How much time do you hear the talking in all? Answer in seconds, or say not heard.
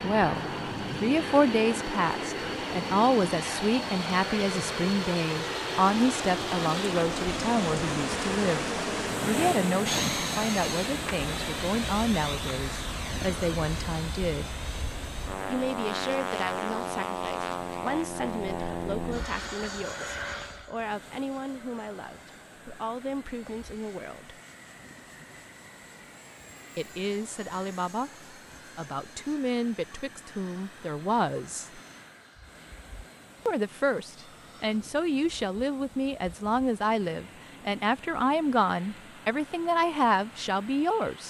36 s.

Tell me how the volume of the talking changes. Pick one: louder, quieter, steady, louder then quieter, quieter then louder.
quieter then louder.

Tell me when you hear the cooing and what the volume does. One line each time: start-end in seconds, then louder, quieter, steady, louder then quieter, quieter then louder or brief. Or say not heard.
not heard.